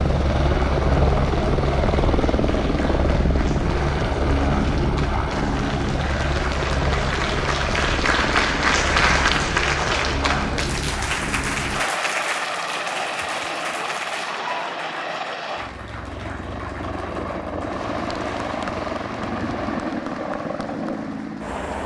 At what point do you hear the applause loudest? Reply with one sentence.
The loudest moment of the applause is at 9 seconds.